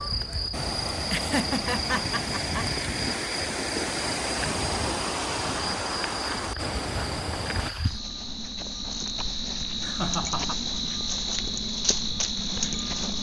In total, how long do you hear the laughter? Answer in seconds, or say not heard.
2 s.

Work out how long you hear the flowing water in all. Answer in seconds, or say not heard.
8 s.